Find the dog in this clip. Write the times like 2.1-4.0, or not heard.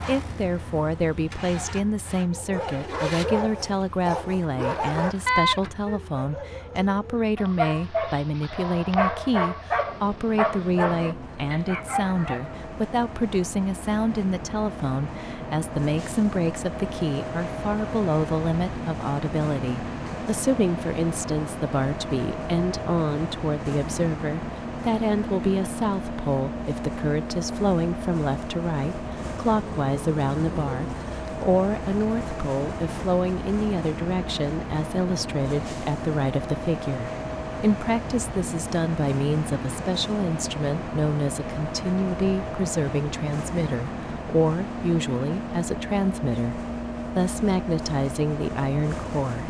2.3-12.6.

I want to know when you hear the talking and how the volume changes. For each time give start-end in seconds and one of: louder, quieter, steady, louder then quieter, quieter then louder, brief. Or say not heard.
0.1-49.4 steady.